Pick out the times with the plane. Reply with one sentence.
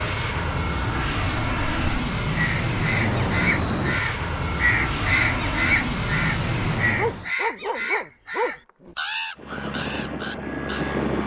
The plane can be heard from 0.0 to 7.3 s and from 9.3 to 11.2 s.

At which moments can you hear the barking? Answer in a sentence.
The barking can be heard from 7.0 to 8.9 s.